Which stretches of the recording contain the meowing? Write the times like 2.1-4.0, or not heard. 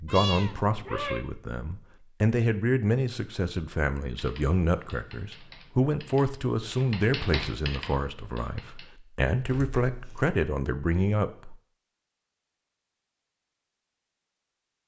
0.1-1.2, 9.4-10.4.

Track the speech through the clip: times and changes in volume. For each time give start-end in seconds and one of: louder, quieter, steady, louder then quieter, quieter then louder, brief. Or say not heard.
0.0-11.6 steady.